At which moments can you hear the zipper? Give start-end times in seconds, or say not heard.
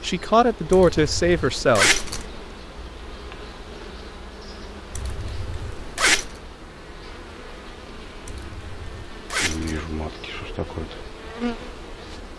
0.7-2.2, 4.9-6.3, 8.2-9.8.